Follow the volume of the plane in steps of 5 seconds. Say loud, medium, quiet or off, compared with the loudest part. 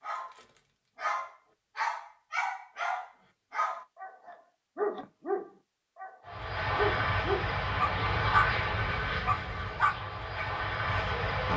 off, loud, loud.